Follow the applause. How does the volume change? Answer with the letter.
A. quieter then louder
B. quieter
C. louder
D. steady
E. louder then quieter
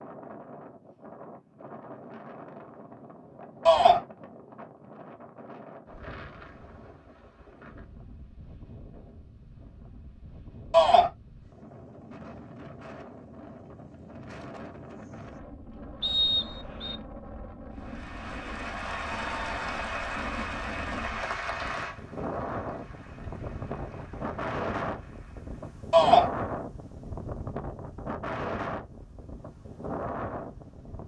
B.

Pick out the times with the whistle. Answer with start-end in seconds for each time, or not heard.
16.0-17.0.